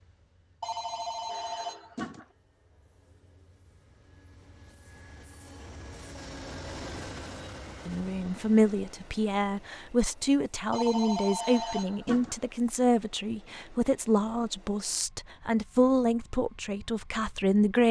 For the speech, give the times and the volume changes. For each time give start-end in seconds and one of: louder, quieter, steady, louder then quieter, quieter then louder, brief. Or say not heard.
7.8-17.8 steady.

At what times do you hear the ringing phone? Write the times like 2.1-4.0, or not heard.
0.6-2.2, 10.7-12.3.